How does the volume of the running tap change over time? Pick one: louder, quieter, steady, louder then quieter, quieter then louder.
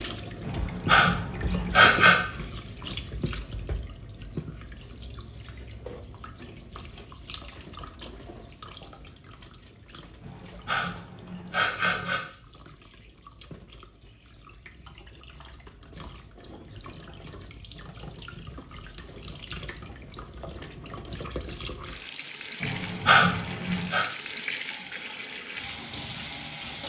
quieter then louder.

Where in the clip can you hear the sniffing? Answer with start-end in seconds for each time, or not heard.
0.4-2.1, 10.2-12.2, 22.6-24.1.